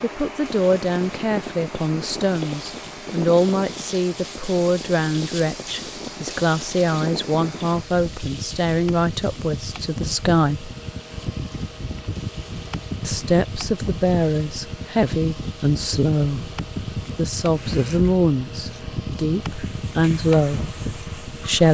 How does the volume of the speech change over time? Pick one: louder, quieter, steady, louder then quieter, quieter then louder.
steady.